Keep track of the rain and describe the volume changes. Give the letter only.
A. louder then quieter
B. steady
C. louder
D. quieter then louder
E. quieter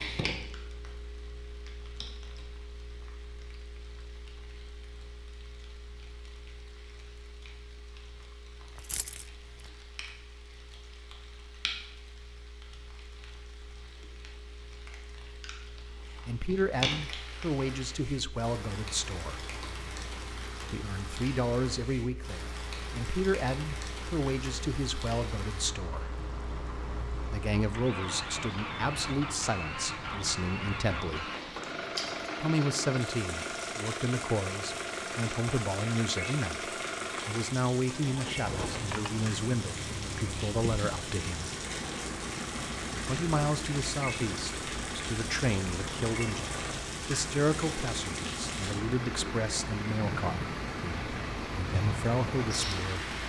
C.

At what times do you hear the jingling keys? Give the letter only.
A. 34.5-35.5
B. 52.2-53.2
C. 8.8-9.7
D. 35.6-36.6
C.